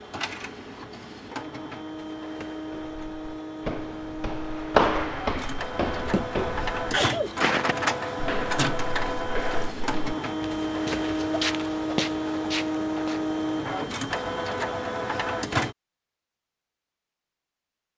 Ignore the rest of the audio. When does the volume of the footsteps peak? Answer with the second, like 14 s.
5 s.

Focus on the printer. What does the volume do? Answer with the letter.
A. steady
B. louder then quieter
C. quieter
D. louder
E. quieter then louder
D.